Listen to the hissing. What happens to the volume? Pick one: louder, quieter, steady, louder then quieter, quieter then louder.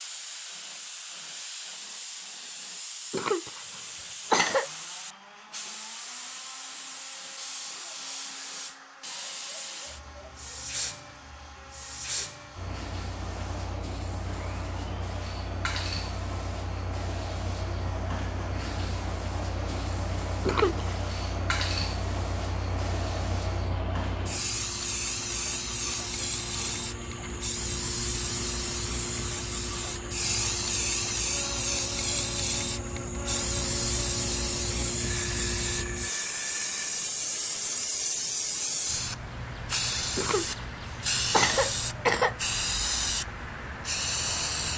louder.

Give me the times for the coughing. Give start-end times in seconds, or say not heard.
3.1-4.7, 20.4-21.1, 40.1-42.4.